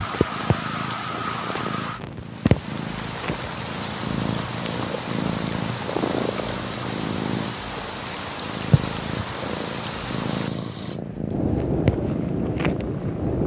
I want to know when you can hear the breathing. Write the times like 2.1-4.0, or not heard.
not heard.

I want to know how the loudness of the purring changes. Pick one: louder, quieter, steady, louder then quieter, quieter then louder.
steady.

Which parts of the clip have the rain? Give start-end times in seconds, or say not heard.
0.0-13.4.